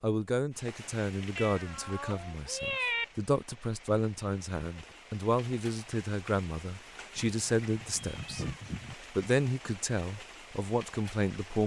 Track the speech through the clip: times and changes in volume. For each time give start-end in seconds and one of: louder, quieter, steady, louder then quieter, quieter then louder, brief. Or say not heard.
0.0-8.4 steady
9.1-11.6 brief.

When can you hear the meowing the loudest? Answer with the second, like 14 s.
3 s.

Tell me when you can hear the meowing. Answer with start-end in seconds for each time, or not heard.
1.4-3.0, 7.2-8.9.